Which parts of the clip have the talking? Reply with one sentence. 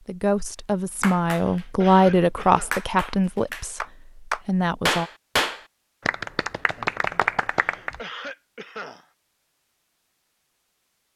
The talking can be heard from 0.1 to 5.1 s.